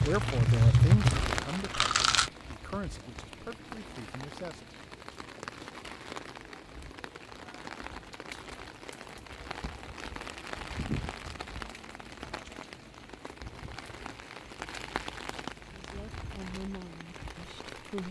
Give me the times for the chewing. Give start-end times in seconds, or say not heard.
0.0-2.3.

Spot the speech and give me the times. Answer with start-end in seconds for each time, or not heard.
0.0-4.7, 15.7-18.0.